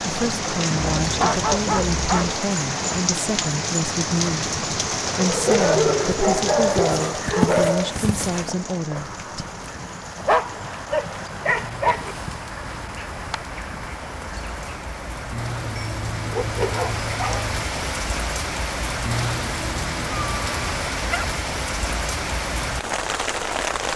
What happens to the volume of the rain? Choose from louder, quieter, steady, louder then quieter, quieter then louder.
quieter then louder.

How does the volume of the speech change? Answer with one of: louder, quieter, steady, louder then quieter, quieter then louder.
steady.